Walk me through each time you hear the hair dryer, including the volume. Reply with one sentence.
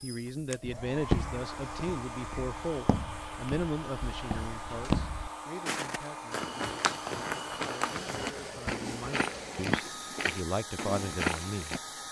You can hear the hair dryer from 0.0 to 12.0 s, at a steady volume.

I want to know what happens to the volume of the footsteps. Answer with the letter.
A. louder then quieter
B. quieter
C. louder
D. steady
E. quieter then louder
C.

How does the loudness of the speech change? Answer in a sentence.
The loudness of the speech goes down, then up.